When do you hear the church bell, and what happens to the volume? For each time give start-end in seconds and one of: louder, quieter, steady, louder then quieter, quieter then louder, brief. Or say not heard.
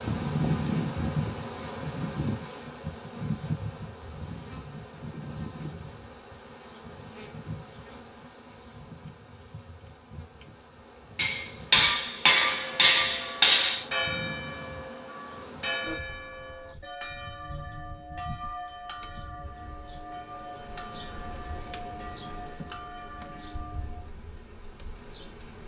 12.3-24.1 quieter.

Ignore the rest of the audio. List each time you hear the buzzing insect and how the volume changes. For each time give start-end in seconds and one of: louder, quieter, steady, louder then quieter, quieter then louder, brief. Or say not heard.
0.0-25.6 quieter.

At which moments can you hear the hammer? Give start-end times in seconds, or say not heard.
11.2-13.8.